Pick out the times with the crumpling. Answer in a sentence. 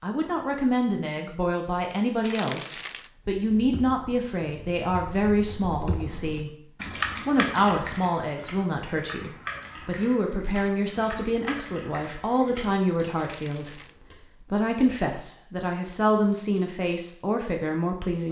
You can hear the crumpling from 2.2 to 3.1 s and from 13.2 to 13.9 s.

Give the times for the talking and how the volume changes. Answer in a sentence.
You can hear the talking from 0.0 to 18.2 s, at a steady volume.